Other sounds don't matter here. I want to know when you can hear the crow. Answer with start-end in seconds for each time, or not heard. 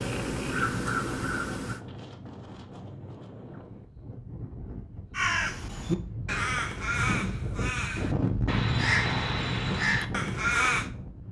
0.0-1.8, 5.1-10.9.